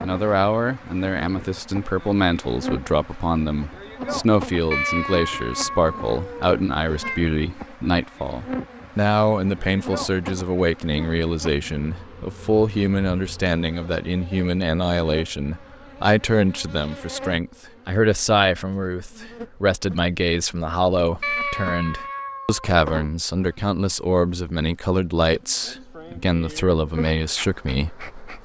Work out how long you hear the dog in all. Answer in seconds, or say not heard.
not heard.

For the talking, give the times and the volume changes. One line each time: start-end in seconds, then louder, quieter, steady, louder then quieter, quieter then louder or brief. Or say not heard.
0.0-28.4 steady.